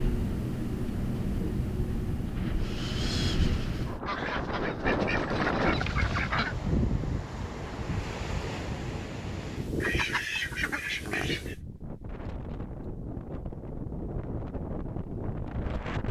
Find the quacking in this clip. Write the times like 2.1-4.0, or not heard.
4.0-6.5, 9.8-11.6.